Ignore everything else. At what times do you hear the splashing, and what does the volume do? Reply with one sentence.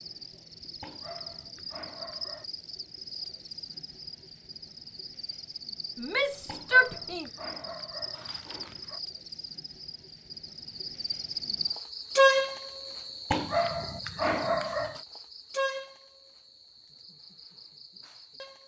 You can't hear the splashing here.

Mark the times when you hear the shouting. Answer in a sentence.
The shouting can be heard from 6.0 to 7.2 s.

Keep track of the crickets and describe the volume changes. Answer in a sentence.
The volume of the crickets goes up, then down.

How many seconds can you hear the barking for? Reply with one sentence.
The barking can be heard for 6 seconds in total.